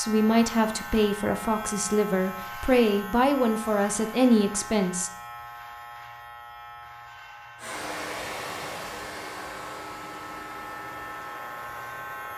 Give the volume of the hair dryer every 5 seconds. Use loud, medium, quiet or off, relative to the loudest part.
off, loud, medium.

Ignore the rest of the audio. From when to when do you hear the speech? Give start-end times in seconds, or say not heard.
0.0-5.1.